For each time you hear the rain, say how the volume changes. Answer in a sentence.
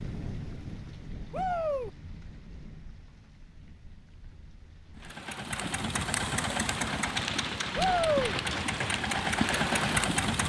The rain can be heard from 0.0 to 10.2 s, getting quieter then louder.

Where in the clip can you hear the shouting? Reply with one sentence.
You can hear the shouting from 1.3 to 1.9 s and from 7.8 to 8.3 s.